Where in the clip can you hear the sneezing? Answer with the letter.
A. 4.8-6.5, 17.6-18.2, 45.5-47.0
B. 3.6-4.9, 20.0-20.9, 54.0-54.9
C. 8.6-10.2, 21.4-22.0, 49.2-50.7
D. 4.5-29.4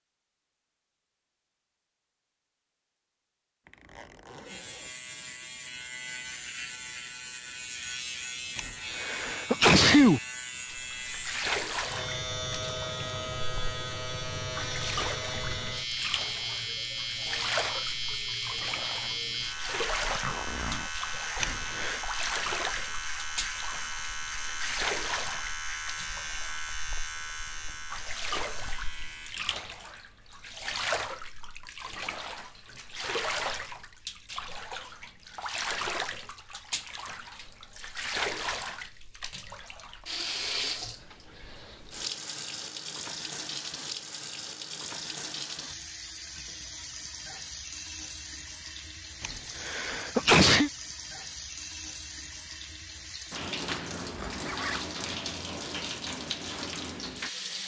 C.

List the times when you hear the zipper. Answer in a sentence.
You can hear the zipper from 3.6 to 4.9 s, from 20.0 to 20.9 s and from 54.0 to 54.9 s.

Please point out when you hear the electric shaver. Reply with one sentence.
You can hear the electric shaver from 4.5 to 29.4 s.